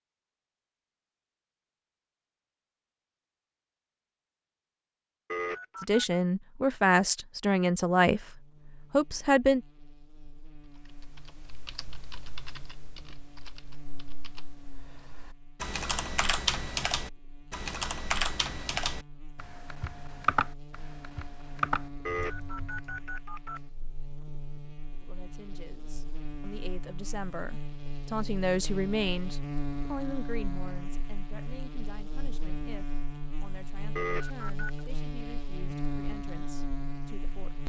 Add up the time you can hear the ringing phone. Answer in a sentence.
You can hear the ringing phone for 3 seconds altogether.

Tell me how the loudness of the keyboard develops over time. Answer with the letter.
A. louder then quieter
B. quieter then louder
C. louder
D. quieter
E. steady
C.